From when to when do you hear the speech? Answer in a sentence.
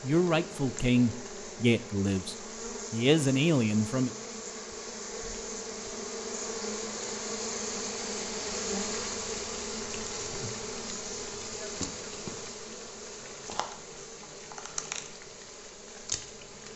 You can hear the speech from 0.0 to 4.1 s.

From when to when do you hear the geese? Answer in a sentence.
The geese can't be heard in this clip.